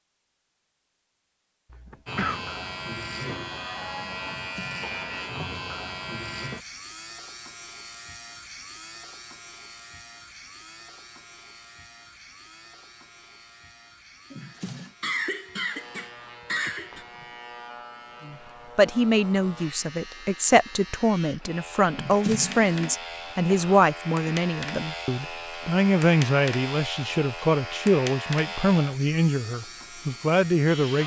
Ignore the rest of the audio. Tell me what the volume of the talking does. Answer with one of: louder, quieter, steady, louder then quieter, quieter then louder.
steady.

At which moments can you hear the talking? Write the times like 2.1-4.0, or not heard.
18.2-31.0.